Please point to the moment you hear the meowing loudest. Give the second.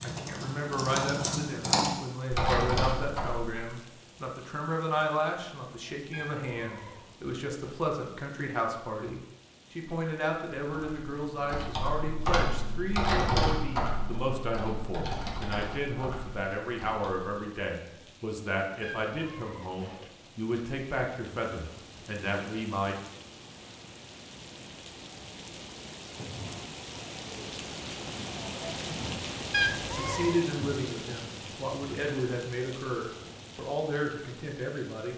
30 s.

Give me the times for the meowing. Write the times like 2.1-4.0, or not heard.
6.1-7.0, 18.8-20.1, 29.5-30.4.